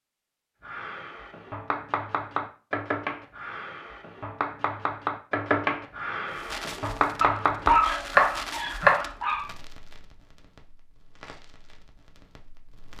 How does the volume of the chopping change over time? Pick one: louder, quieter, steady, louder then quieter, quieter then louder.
louder.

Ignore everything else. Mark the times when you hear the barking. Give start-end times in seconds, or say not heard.
7.2-9.5.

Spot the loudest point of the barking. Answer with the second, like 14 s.
8 s.